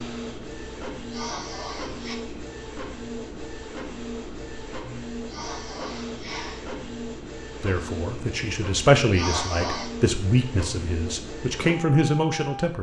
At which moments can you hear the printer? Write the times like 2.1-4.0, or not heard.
0.0-12.7.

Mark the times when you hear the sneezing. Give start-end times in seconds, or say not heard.
1.1-2.1, 5.2-6.7, 9.1-9.9.